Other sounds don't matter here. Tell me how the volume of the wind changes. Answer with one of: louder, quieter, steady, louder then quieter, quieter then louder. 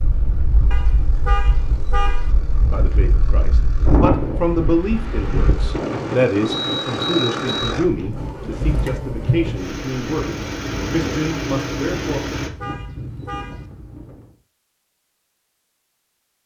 louder then quieter.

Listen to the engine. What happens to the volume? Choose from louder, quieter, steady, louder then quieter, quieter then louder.
louder.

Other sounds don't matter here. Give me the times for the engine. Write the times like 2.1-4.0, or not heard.
0.0-12.5.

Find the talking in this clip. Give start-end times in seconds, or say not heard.
2.6-12.2.